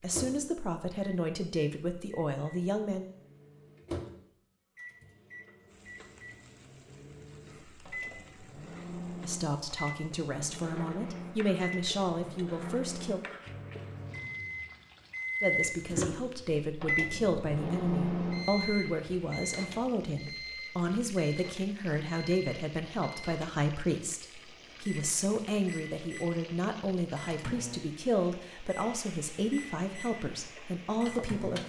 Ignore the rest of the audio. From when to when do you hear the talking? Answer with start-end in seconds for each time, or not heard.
0.0-3.1, 9.2-13.2, 15.4-31.6.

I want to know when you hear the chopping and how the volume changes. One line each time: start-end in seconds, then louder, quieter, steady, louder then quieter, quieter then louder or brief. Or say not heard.
not heard.